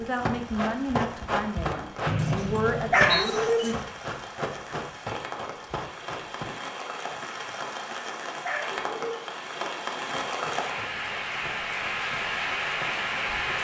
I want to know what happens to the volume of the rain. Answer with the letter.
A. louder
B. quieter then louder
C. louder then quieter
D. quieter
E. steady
A.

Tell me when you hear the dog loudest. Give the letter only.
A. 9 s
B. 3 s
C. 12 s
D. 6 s
B.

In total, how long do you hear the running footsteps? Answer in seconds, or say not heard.
10 s.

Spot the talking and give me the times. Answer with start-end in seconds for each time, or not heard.
0.0-3.8.